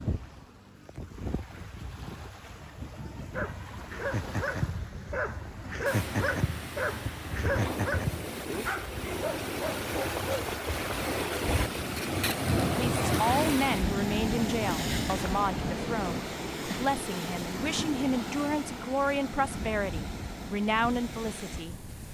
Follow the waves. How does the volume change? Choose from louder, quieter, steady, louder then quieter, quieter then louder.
louder then quieter.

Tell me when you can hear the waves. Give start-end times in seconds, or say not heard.
0.0-22.0.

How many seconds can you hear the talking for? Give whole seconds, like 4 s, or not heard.
9 s.